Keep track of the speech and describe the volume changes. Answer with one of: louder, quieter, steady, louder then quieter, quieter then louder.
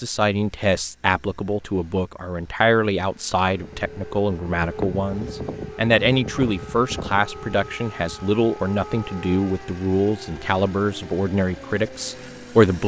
steady.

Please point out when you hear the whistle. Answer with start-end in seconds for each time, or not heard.
not heard.